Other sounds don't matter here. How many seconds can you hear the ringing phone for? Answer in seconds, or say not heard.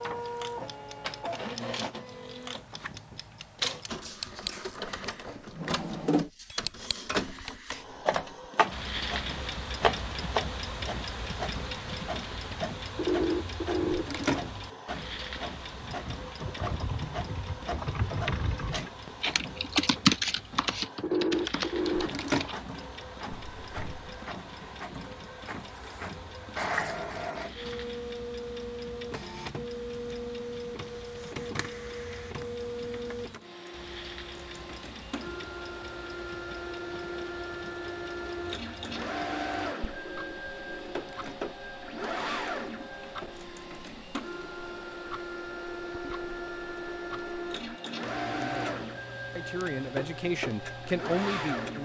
5 s.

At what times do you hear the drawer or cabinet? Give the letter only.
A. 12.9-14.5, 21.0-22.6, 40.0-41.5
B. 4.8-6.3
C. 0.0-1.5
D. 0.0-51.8
B.